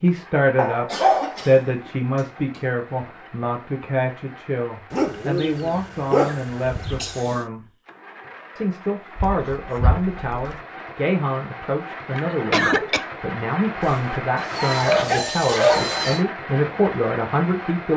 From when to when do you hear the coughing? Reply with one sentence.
You can hear the coughing from 0.8 to 2.6 s, from 6.2 to 7.5 s and from 12.1 to 13.1 s.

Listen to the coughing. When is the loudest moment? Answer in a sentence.
The volume of the coughing peaks at 13 seconds.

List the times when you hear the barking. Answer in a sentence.
The barking can be heard from 0.6 to 1.9 s, from 4.9 to 7.2 s, from 9.2 to 10.6 s and from 13.8 to 16.2 s.